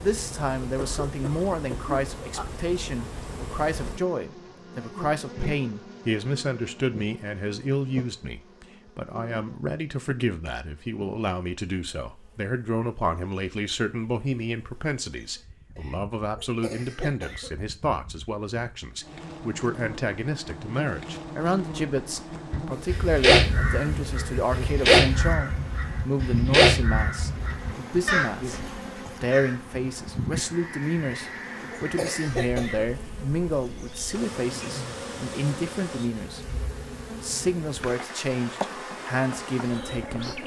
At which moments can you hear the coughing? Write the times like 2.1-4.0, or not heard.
0.6-2.5, 15.8-17.5, 31.1-32.9.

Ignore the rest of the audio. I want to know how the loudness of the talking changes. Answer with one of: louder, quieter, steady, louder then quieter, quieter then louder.
steady.